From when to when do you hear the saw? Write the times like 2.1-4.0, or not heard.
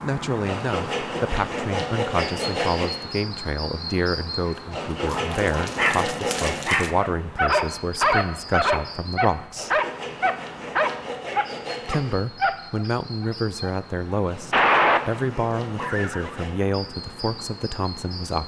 0.5-3.0, 4.7-6.7, 9.6-12.2, 14.2-16.6.